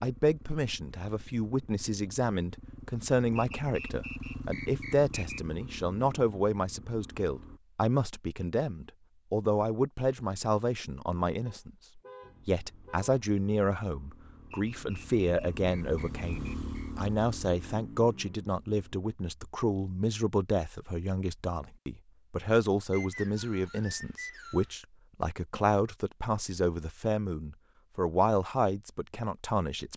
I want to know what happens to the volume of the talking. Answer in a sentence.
The volume of the talking stays about the same.